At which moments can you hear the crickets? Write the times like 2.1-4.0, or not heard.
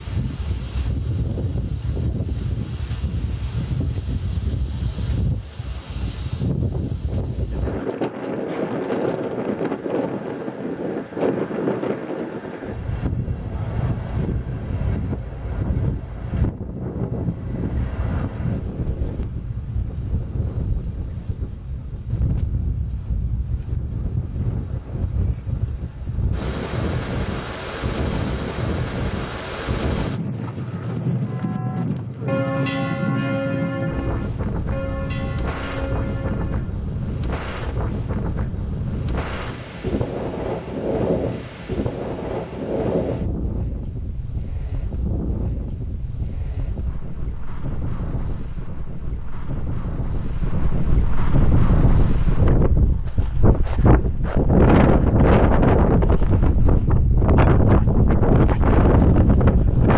not heard.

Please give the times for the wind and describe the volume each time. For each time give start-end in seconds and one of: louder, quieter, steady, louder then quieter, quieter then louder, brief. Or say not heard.
0.0-59.9 louder.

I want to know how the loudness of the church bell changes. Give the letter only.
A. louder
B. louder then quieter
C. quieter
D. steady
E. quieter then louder
C.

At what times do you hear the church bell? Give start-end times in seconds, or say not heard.
31.2-36.8.